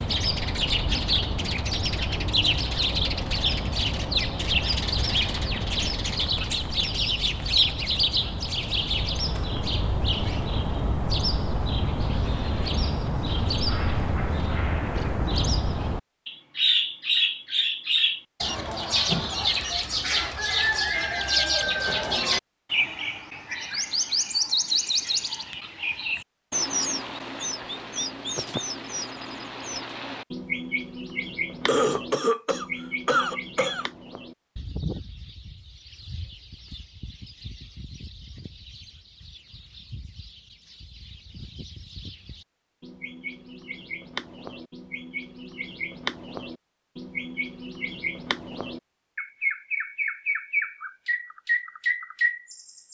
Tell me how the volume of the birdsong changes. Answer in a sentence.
The loudness of the birdsong goes down, then up.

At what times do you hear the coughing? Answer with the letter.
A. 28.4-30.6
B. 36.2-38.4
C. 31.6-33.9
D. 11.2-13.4
C.